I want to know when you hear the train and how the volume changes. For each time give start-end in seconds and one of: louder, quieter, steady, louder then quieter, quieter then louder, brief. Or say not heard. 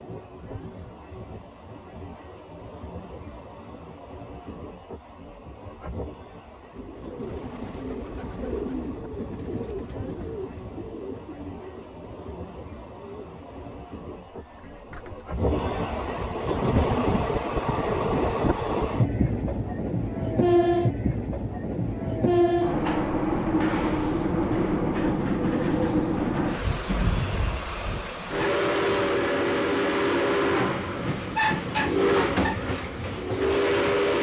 0.0-34.1 louder.